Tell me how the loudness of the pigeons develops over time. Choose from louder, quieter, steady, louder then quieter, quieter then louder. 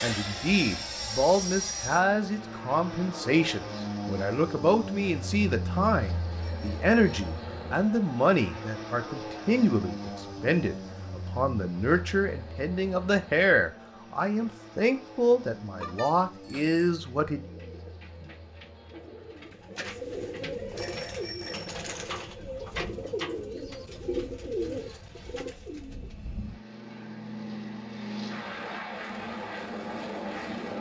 louder.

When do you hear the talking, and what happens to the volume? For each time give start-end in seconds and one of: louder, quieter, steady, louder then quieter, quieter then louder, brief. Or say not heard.
0.0-17.4 steady.